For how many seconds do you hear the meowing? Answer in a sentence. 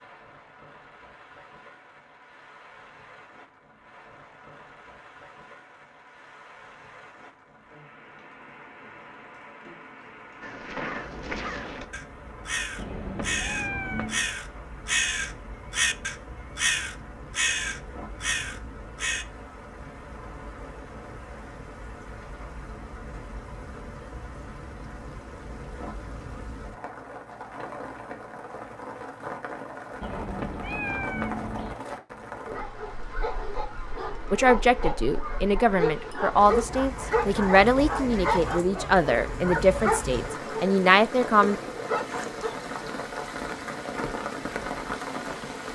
You can hear the meowing for 3 seconds altogether.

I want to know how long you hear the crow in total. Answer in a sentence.
The crow can be heard for 9 seconds in total.